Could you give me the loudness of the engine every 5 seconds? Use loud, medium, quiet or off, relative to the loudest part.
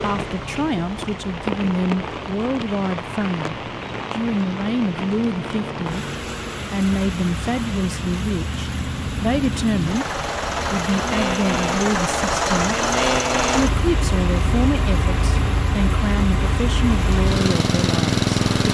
quiet, medium, loud, loud.